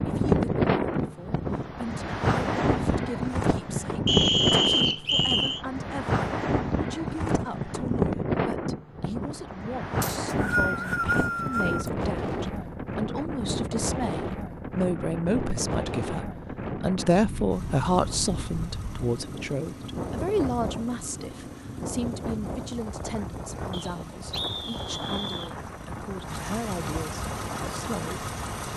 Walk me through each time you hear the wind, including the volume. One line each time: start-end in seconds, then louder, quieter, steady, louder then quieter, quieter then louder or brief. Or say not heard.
0.0-28.7 quieter.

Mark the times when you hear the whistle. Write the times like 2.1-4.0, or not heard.
4.0-5.6, 10.0-11.9, 23.7-25.6.